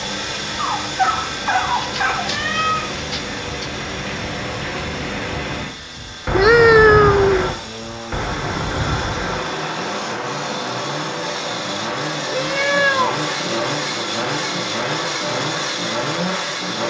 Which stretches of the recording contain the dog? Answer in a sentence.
You can hear the dog from 0.6 to 2.3 s.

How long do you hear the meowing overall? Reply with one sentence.
The meowing can be heard for 4 seconds in total.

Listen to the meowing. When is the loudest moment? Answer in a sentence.
The loudest moment of the meowing is at 7 seconds.